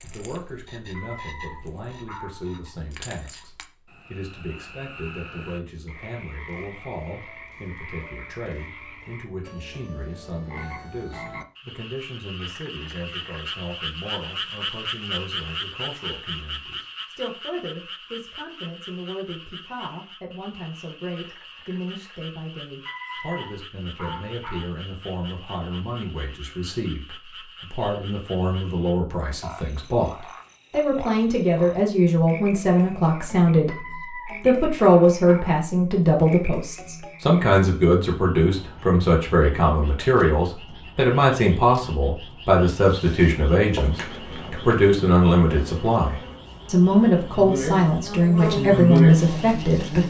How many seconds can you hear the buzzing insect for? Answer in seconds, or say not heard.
7 s.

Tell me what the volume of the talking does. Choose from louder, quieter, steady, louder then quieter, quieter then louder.
louder.